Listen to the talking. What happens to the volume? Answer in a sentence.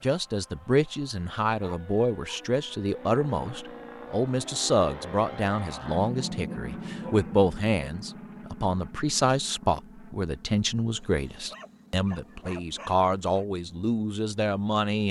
The loudness of the talking stays about the same.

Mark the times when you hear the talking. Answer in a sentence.
You can hear the talking from 0.0 to 15.0 s.